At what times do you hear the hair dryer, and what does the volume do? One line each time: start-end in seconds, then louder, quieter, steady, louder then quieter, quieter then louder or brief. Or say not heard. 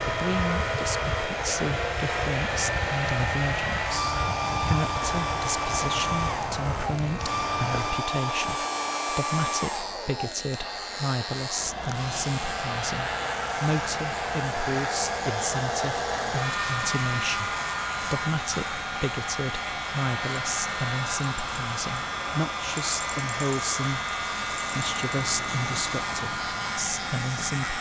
0.0-27.7 steady.